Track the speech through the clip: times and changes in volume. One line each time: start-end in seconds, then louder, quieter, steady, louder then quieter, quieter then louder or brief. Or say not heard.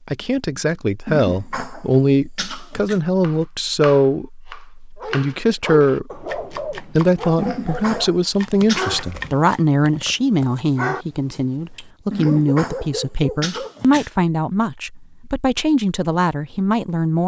0.1-17.2 steady.